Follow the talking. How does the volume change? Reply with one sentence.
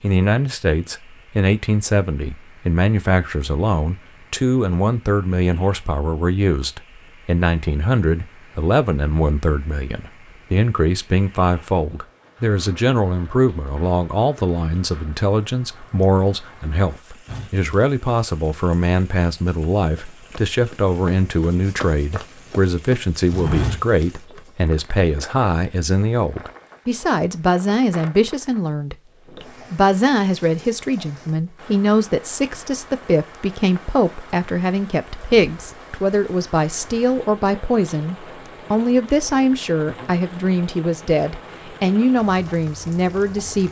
The volume of the talking stays about the same.